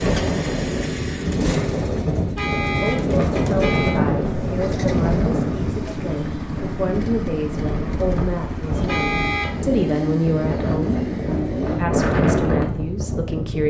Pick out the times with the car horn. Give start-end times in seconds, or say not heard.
2.1-4.0, 8.7-9.6.